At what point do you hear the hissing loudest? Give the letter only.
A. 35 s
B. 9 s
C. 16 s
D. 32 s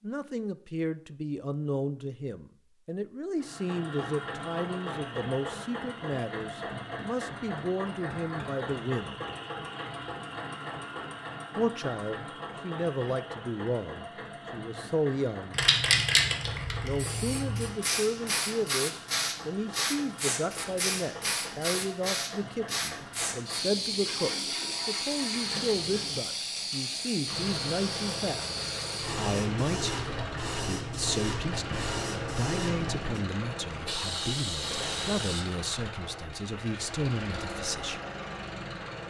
C.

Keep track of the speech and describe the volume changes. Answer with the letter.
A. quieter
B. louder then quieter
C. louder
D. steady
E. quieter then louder
D.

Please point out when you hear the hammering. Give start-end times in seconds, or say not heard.
not heard.